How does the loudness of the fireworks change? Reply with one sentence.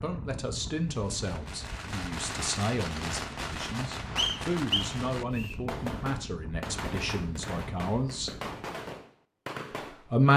The loudness of the fireworks stays about the same.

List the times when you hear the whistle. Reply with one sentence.
You can hear the whistle from 4.2 to 5.5 s.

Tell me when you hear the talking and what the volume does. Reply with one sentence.
You can hear the talking from 0.0 to 8.3 s, at a steady volume; and briefly from 9.8 to 10.3 s.